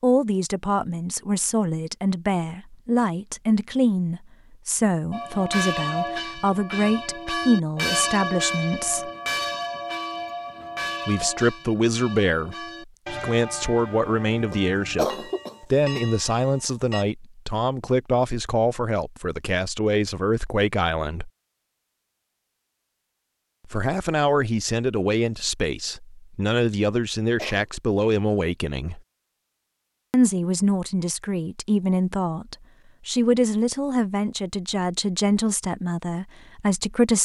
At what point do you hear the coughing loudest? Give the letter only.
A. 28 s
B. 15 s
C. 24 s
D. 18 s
B.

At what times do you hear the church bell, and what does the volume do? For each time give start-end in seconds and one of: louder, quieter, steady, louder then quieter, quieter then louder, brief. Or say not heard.
5.1-17.1 quieter.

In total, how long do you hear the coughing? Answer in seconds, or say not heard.
2 s.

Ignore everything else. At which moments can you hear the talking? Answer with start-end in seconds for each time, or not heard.
0.0-9.1, 11.1-21.3, 23.6-29.0, 30.1-37.2.